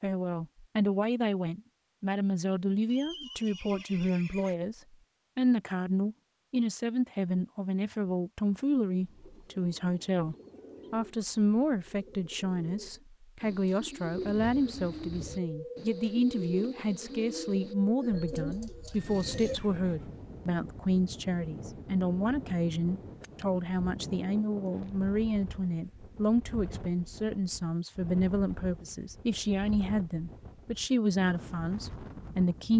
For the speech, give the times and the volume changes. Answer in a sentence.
You can hear the speech from 0.0 to 32.7 s, at a steady volume.